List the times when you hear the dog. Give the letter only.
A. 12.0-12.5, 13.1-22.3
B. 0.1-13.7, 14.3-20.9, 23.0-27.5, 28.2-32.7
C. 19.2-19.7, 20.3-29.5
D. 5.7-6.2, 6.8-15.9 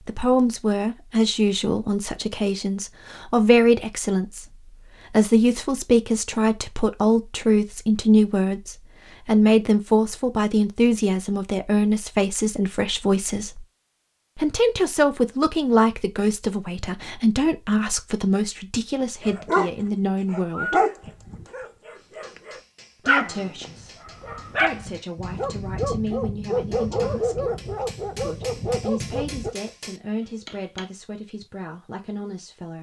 C.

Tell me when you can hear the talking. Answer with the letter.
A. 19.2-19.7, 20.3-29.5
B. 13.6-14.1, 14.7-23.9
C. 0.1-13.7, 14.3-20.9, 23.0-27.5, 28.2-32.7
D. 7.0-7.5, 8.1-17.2
C.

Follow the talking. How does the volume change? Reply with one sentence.
The loudness of the talking goes down.